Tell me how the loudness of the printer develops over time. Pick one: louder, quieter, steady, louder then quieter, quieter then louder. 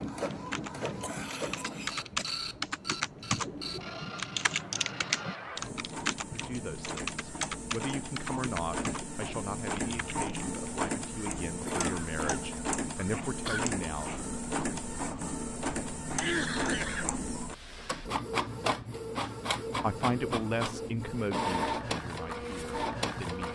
louder.